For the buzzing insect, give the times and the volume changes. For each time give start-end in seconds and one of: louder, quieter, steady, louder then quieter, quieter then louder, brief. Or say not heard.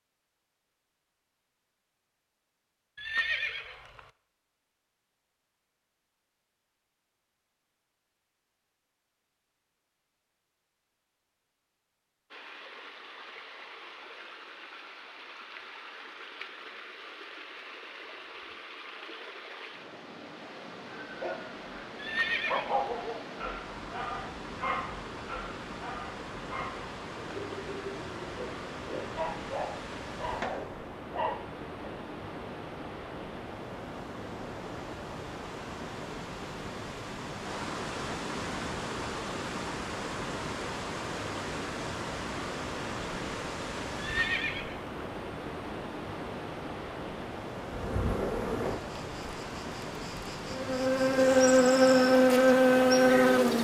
47.6-53.5 quieter then louder.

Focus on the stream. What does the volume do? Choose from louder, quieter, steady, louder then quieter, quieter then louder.
louder.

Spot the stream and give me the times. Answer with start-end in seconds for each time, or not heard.
12.3-53.5.